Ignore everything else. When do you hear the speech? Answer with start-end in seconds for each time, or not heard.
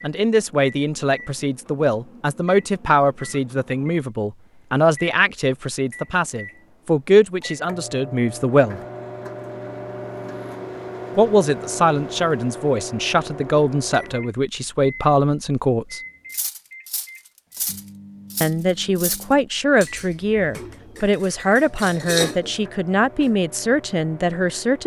0.0-8.8, 11.2-16.0, 18.4-24.8.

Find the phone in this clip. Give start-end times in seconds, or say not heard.
not heard.